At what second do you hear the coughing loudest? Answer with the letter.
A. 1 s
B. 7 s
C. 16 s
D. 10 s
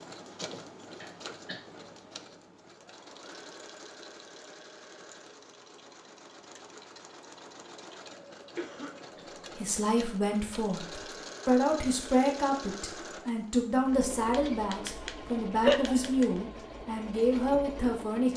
C.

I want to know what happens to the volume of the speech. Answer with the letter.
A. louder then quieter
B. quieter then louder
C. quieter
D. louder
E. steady
E.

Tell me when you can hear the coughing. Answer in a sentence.
The coughing can be heard from 0.4 to 1.6 s, from 8.6 to 9.2 s and from 15.6 to 16.1 s.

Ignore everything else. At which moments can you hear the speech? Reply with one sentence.
You can hear the speech from 9.6 to 18.3 s.